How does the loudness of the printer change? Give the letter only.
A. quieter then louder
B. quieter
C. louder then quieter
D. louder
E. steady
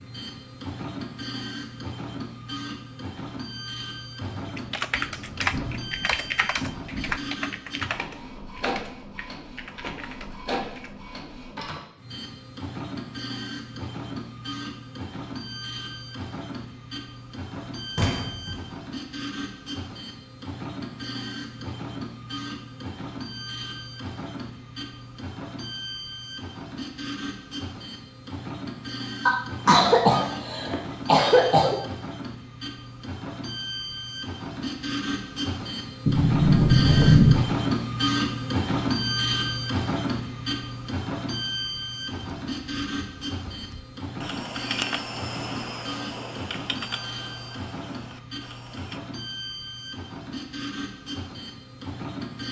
C.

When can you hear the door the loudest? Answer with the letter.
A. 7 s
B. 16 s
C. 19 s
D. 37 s
D.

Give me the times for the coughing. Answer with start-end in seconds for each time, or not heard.
29.2-31.8.